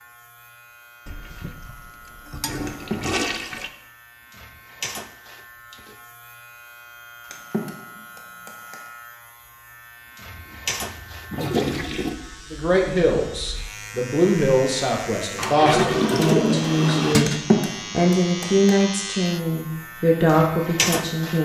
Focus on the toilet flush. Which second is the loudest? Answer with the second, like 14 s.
16 s.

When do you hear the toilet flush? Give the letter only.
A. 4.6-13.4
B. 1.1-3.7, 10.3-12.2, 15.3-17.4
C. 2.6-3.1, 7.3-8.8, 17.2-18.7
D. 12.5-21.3
B.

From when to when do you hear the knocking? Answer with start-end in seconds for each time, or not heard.
2.6-3.1, 7.3-8.8, 17.2-18.7.